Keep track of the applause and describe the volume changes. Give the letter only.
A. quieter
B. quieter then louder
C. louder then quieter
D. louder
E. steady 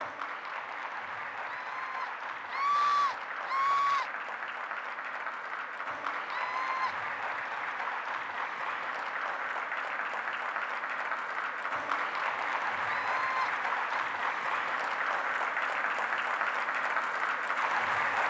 D.